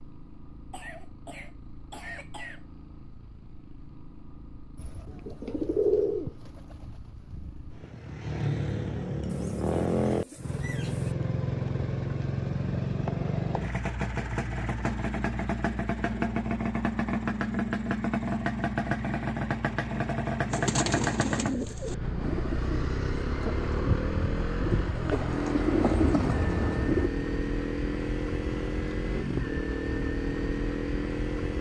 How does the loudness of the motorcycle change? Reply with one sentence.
The loudness of the motorcycle goes up.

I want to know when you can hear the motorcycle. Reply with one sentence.
You can hear the motorcycle from 0.0 to 31.5 s.